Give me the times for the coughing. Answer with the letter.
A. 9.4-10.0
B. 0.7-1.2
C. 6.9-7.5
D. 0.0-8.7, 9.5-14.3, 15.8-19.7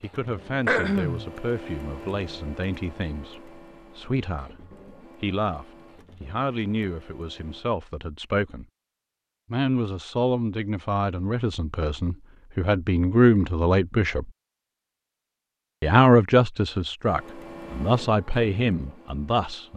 B.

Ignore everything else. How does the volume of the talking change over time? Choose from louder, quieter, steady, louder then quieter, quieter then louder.
louder.